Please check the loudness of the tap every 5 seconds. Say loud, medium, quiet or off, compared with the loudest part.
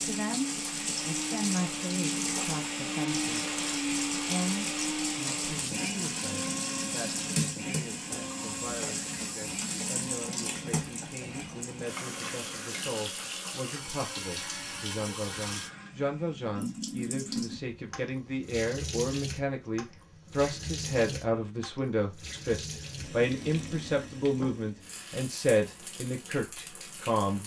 loud, loud, loud, loud, medium, medium.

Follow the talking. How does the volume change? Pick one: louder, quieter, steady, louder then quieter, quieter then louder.
quieter then louder.